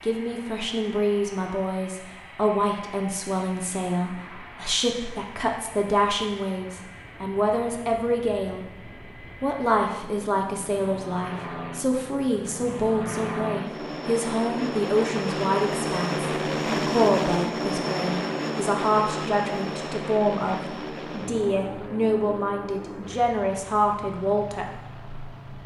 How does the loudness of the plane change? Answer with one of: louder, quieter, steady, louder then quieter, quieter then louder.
louder then quieter.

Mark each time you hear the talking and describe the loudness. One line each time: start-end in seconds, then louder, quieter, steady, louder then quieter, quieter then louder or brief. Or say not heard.
0.0-8.7 steady
9.4-25.6 steady.